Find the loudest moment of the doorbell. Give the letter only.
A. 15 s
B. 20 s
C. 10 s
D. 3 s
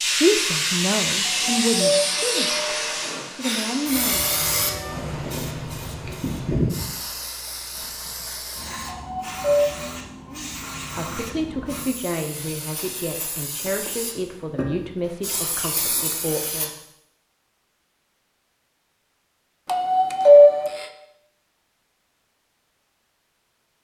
B.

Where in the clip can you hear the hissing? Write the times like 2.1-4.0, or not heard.
0.0-16.7.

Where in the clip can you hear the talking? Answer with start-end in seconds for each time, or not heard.
0.0-4.4, 10.2-16.7.